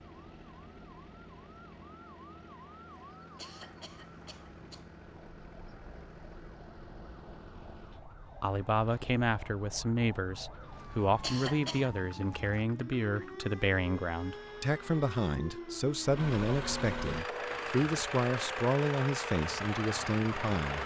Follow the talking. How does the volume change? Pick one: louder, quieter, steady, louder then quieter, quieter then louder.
steady.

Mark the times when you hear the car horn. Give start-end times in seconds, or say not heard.
not heard.